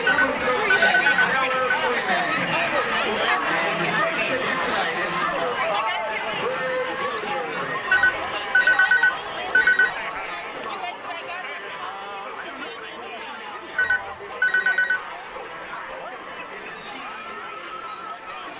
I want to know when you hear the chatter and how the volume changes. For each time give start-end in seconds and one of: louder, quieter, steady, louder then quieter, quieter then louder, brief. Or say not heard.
0.0-18.5 quieter.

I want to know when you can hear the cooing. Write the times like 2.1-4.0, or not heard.
not heard.